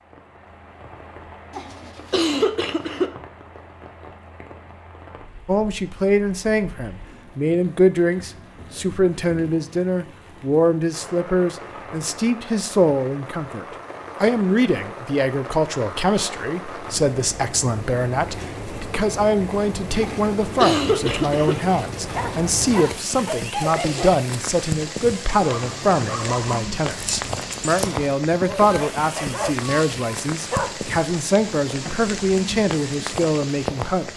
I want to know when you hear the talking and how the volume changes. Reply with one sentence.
You can hear the talking from 5.5 to 34.1 s, at a steady volume.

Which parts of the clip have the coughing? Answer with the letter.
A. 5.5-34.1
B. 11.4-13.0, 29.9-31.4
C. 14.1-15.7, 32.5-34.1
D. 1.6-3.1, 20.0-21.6
D.